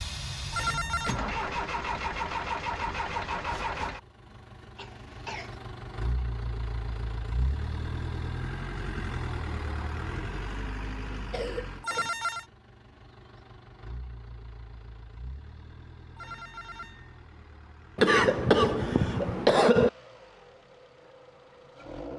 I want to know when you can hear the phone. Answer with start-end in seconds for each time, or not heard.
0.5-1.2, 11.8-12.4, 16.1-17.1.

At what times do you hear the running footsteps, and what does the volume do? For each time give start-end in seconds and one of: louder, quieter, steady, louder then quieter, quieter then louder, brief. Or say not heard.
not heard.